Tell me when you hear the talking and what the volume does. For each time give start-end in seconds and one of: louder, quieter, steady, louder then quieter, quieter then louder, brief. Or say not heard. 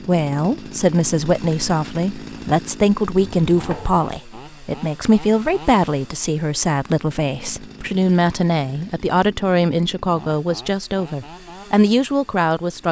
0.1-12.8 steady.